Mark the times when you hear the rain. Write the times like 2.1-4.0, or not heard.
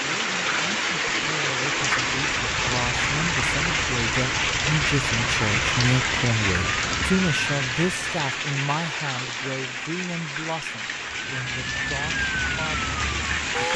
0.0-13.7.